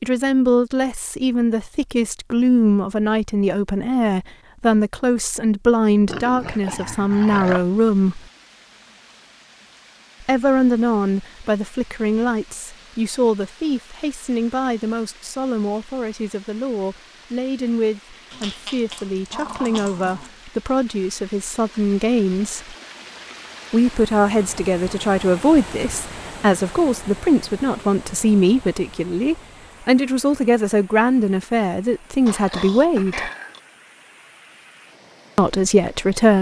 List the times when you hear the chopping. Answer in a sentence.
You can't hear the chopping here.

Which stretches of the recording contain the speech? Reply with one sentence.
You can hear the speech from 0.0 to 8.2 s, from 10.2 to 22.8 s, from 23.7 to 33.3 s and from 35.4 to 36.3 s.